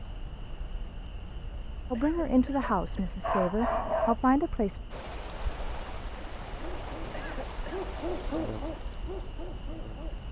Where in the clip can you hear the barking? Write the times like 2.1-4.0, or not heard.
2.6-4.2, 6.5-10.2.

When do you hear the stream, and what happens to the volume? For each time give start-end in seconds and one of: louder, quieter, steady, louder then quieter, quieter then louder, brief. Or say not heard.
4.9-10.2 quieter.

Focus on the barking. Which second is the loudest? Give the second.
4 s.